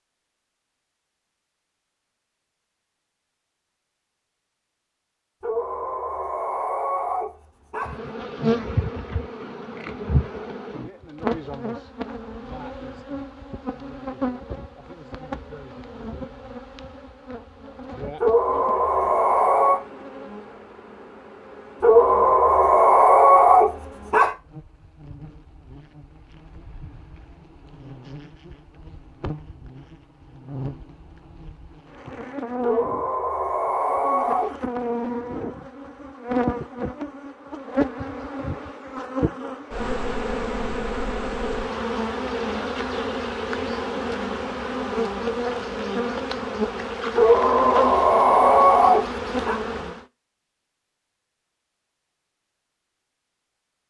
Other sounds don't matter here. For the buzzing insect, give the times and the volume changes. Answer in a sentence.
The buzzing insect can be heard from 7.8 to 50.0 s, getting quieter then louder.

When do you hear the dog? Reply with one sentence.
You can hear the dog from 5.4 to 8.1 s, from 18.2 to 19.8 s, from 21.8 to 24.4 s, from 32.6 to 34.6 s and from 47.1 to 49.6 s.